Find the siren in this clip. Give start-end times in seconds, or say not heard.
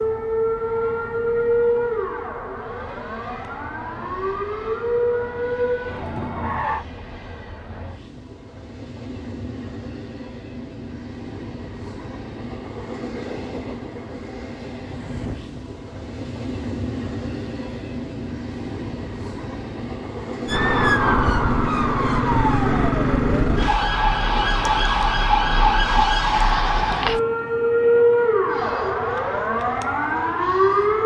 0.0-6.8, 20.4-31.0.